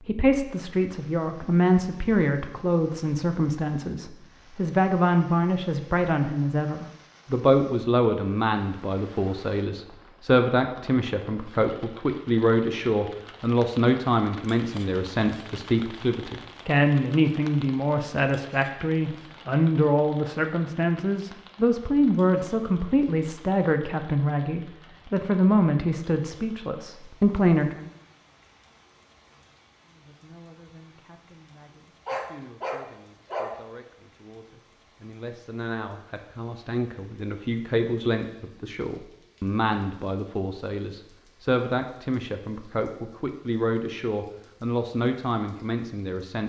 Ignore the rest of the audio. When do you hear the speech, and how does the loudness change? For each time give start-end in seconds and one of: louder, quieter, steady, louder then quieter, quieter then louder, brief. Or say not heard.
0.0-27.8 steady
29.9-46.4 louder.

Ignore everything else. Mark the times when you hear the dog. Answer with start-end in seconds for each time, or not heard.
32.0-33.6.